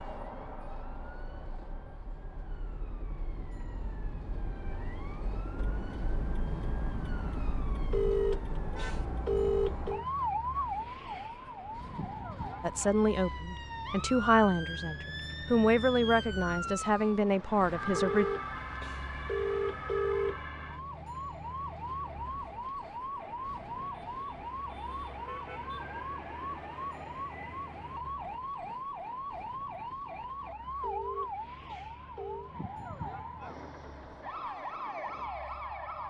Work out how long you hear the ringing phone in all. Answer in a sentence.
You can hear the ringing phone for 6 seconds altogether.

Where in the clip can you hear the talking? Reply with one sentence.
The talking can be heard from 12.6 to 18.2 s.